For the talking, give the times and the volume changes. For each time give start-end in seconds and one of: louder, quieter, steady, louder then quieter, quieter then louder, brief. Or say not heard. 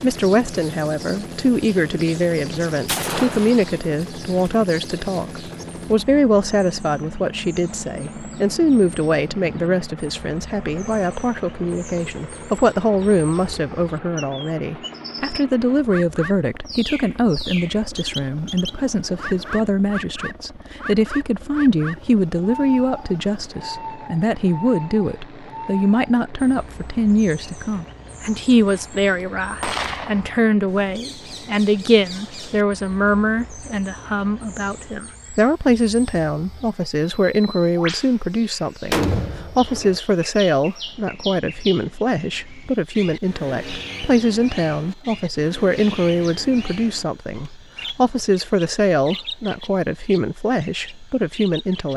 0.0-51.9 steady.